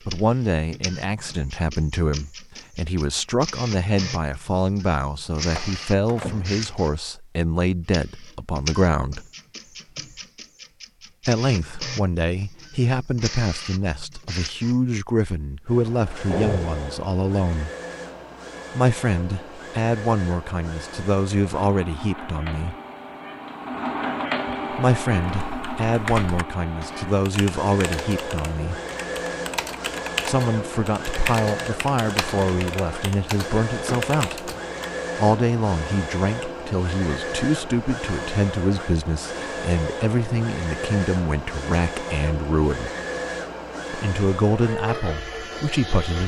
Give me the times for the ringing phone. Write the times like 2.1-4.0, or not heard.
not heard.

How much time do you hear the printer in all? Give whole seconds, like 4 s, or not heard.
46 s.